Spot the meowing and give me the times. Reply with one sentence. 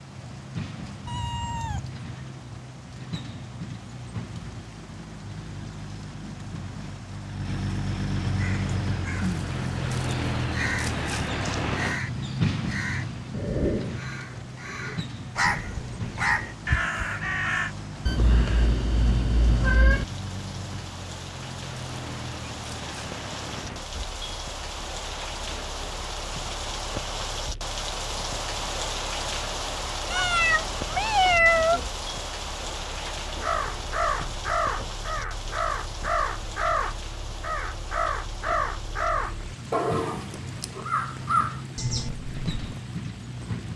The meowing can be heard from 1.1 to 1.9 s, from 18.1 to 20.1 s and from 30.1 to 31.8 s.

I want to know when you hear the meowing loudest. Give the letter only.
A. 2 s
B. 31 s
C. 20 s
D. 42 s
B.